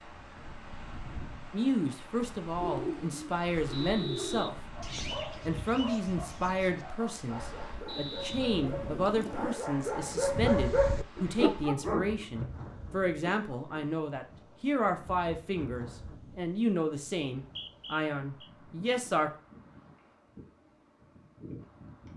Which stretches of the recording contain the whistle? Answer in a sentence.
The whistle can be heard from 3.7 to 5.2 s, from 7.8 to 8.4 s and from 17.4 to 18.5 s.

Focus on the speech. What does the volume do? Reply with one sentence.
The volume of the speech stays about the same.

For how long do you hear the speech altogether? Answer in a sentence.
The speech can be heard for 17 seconds in total.